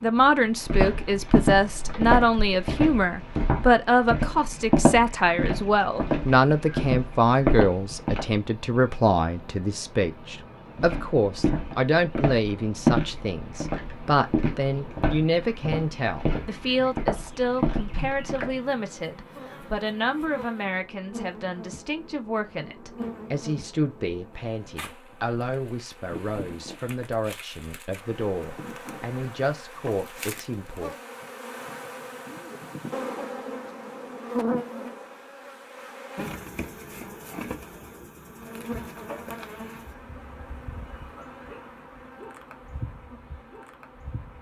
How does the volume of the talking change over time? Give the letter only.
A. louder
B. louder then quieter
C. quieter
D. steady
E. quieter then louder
C.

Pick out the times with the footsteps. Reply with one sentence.
The footsteps can be heard from 0.7 to 8.3 s and from 10.8 to 18.6 s.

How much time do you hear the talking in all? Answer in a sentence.
You can hear the talking for 31 seconds altogether.